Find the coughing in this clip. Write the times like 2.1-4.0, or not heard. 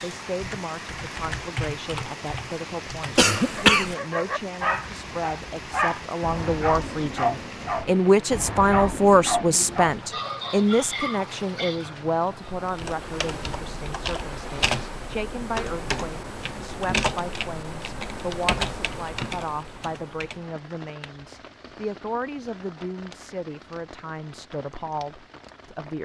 3.1-4.0.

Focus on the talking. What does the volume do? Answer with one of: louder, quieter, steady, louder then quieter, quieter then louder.
louder then quieter.